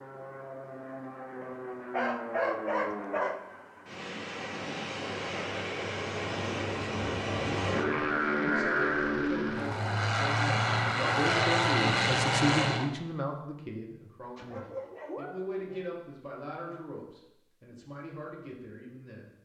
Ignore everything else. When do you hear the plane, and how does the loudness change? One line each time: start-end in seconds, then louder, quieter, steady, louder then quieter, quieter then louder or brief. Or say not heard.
0.0-12.9 louder.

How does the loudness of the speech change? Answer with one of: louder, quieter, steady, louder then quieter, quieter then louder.
louder then quieter.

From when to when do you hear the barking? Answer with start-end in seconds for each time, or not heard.
1.4-3.4, 14.3-15.9.